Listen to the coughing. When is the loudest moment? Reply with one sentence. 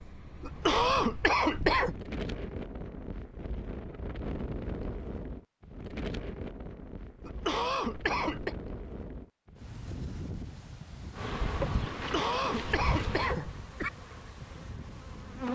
The loudest moment of the coughing is at 1 second.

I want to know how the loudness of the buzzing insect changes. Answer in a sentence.
The volume of the buzzing insect goes down.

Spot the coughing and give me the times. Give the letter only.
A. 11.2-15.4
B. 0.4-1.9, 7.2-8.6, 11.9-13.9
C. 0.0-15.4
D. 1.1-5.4
B.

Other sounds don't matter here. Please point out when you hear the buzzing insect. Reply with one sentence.
The buzzing insect can be heard from 11.2 to 15.4 s.